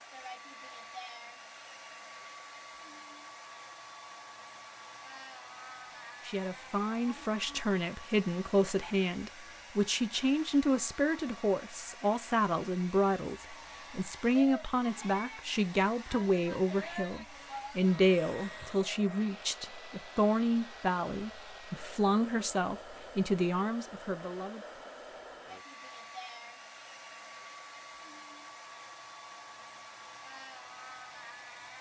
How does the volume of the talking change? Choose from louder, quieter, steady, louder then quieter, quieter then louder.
steady.